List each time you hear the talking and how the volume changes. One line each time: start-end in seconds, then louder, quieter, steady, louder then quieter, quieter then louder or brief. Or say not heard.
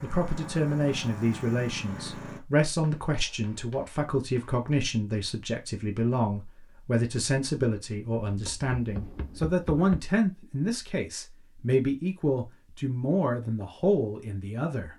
0.0-14.9 steady.